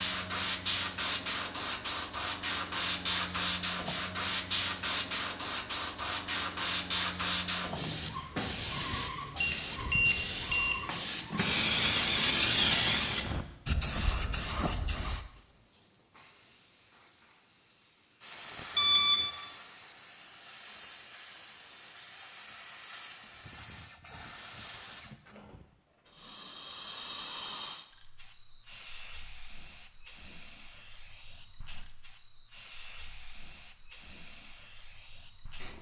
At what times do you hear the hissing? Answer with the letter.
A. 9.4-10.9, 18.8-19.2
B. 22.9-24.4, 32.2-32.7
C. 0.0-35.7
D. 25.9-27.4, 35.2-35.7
C.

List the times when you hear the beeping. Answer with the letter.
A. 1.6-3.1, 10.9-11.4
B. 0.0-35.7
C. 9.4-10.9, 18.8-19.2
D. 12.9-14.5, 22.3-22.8
C.